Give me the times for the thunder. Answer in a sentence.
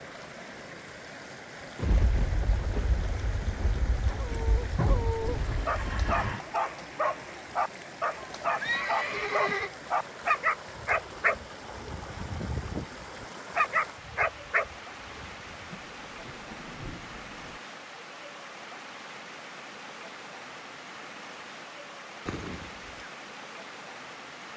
You can hear the thunder from 1.8 to 6.2 s and from 15.7 to 17.6 s.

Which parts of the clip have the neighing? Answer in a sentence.
You can hear the neighing from 4.8 to 6.4 s, from 8.6 to 9.7 s and from 22.2 to 23.1 s.